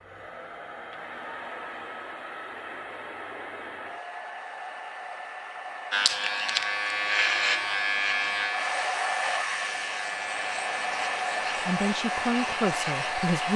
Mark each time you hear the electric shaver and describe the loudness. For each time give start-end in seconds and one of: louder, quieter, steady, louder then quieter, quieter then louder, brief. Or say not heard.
5.9-13.5 quieter.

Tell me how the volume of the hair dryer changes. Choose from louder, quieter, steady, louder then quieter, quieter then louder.
louder.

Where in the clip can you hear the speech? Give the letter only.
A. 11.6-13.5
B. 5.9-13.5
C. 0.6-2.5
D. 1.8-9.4
A.